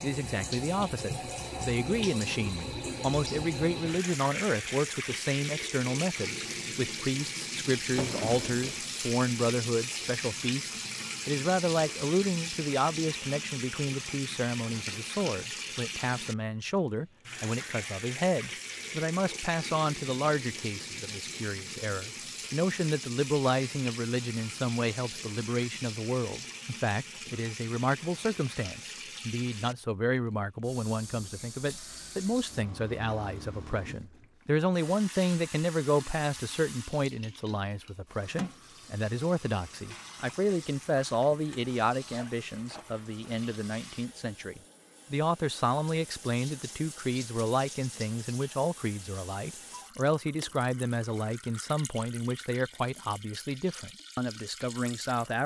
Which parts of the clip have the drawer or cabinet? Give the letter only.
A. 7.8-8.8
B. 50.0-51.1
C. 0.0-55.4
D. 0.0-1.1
A.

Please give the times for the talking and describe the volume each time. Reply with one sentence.
You can hear the talking from 0.0 to 55.4 s, at a steady volume.